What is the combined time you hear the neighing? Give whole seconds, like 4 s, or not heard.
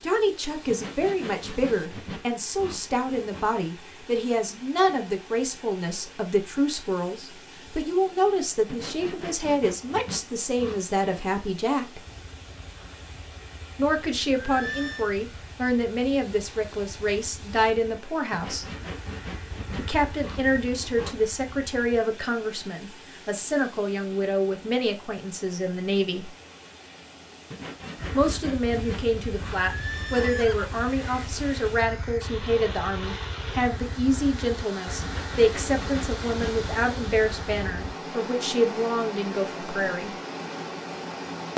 2 s.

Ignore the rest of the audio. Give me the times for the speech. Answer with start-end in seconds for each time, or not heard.
0.0-12.0, 13.8-18.6, 19.8-26.3, 28.1-40.1.